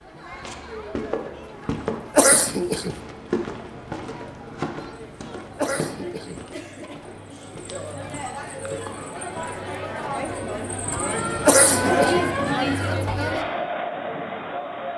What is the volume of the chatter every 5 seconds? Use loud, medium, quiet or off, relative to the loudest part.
quiet, medium, loud.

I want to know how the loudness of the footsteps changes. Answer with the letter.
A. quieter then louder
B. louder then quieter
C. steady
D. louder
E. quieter
E.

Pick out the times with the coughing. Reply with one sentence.
You can hear the coughing from 2.1 to 3.0 s, from 5.5 to 6.3 s and from 11.4 to 12.2 s.